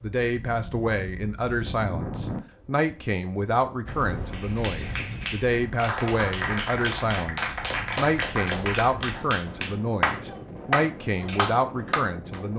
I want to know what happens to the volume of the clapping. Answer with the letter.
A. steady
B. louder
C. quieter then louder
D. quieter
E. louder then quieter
B.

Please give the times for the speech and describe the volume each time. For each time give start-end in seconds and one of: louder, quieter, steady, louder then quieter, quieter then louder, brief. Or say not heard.
0.0-12.5 steady.